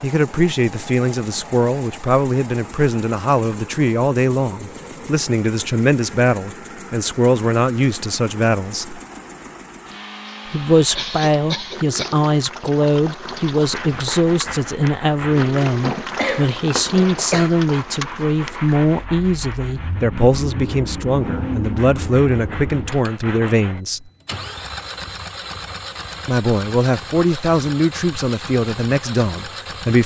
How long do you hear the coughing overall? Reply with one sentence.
You can hear the coughing for 3 seconds altogether.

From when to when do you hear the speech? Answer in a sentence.
You can hear the speech from 0.0 to 9.0 s, from 10.5 to 24.1 s and from 26.2 to 30.0 s.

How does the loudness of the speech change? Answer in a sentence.
The volume of the speech stays about the same.